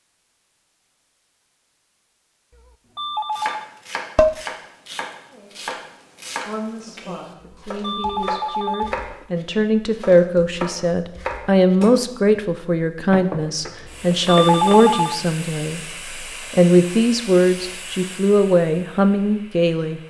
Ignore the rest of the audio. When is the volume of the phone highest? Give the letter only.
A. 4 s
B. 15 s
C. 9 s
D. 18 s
B.